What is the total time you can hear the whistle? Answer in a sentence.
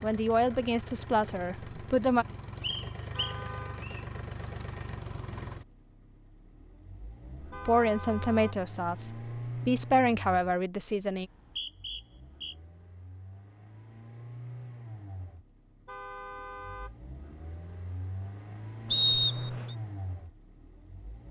The whistle can be heard for 4 seconds in total.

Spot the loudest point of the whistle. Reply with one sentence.
The volume of the whistle peaks at 19 seconds.